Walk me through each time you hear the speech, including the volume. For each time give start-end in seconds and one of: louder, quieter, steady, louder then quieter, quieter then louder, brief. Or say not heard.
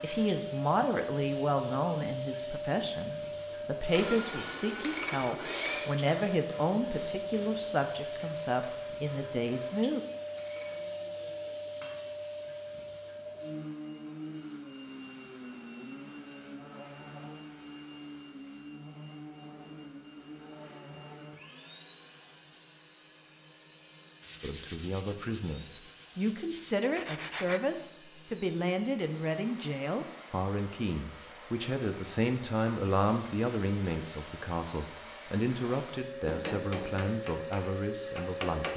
0.0-10.0 steady
24.4-38.7 steady.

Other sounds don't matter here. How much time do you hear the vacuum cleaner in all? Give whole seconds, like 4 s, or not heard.
39 s.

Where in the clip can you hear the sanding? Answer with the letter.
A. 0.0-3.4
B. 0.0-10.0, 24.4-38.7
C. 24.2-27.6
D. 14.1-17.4
C.